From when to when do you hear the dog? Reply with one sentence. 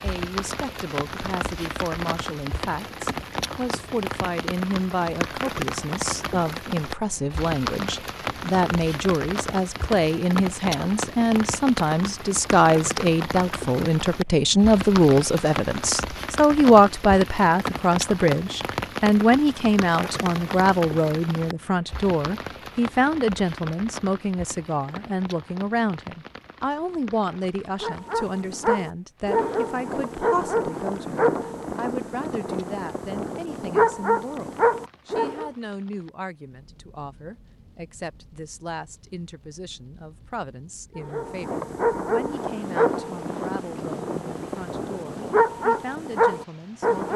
The dog can be heard from 27.8 to 35.5 s and from 41.0 to 47.1 s.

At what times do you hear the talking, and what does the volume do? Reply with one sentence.
The talking can be heard from 0.0 to 47.1 s, getting louder then quieter.